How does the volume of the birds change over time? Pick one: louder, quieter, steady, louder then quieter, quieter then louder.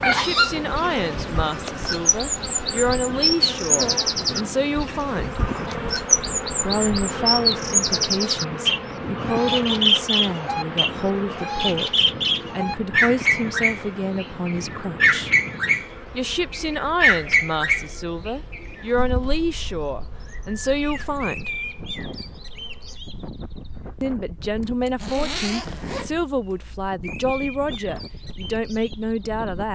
quieter.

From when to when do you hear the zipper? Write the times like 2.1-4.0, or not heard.
24.6-26.6.